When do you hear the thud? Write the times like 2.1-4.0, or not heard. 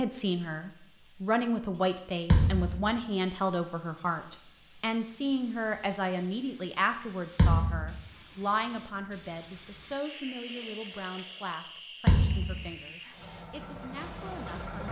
2.3-2.9, 7.3-8.0, 12.1-12.7.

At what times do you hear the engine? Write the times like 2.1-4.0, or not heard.
13.1-14.8.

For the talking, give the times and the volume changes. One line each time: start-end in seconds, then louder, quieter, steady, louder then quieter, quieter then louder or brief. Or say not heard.
0.0-14.8 quieter.